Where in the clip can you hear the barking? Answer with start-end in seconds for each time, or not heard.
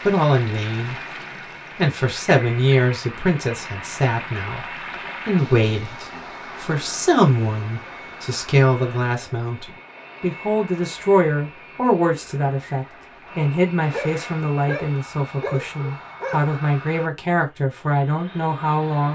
13.9-16.4.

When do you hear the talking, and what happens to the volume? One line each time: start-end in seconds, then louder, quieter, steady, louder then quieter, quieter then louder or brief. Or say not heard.
0.0-0.9 brief
1.8-19.1 steady.